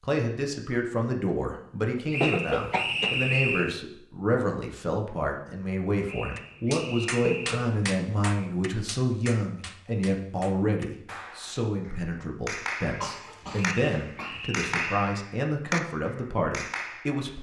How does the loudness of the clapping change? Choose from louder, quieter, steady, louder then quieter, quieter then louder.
quieter then louder.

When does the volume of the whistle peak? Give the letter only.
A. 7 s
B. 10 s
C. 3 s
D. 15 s
C.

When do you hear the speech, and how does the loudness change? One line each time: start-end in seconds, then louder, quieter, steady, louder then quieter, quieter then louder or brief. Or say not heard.
0.0-17.3 steady.